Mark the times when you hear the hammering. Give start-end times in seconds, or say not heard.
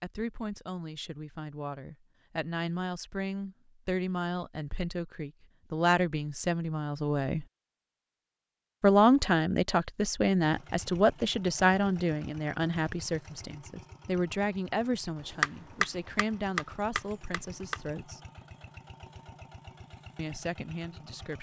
15.3-17.8.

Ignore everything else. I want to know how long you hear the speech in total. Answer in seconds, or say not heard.
18 s.